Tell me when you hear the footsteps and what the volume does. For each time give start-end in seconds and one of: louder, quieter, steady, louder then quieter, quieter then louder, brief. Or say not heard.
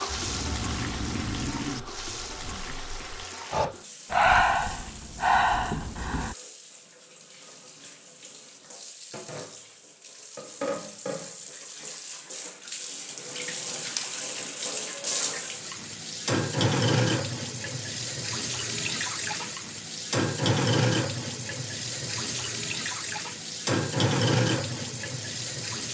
not heard.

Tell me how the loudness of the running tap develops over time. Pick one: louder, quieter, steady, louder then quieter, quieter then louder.
quieter then louder.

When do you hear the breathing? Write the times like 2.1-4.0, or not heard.
0.1-6.3.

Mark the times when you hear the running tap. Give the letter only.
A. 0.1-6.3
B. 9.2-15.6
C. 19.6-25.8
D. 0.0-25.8
D.